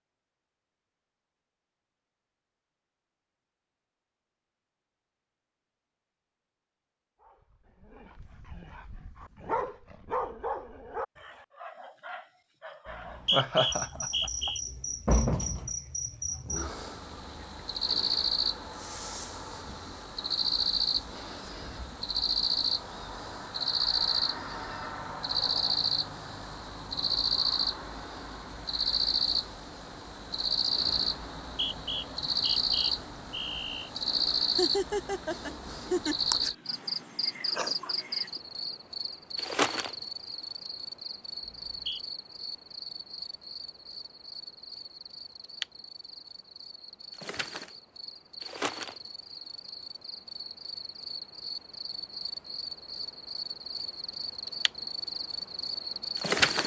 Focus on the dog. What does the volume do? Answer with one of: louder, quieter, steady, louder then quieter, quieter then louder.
louder then quieter.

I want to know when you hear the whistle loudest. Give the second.
13 s.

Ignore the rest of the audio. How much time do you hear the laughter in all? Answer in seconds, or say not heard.
3 s.